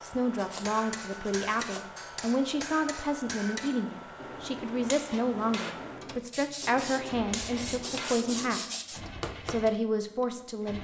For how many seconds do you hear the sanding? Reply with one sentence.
You can hear the sanding for 4 seconds altogether.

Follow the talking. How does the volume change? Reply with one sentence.
The loudness of the talking stays about the same.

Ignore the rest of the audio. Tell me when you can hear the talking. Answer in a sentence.
The talking can be heard from 0.0 to 10.7 s.